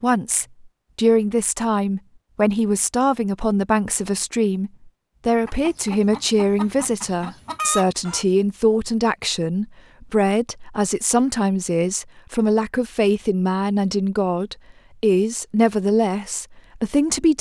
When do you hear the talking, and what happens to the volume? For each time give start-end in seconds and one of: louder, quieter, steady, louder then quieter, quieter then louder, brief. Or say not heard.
0.0-17.3 steady.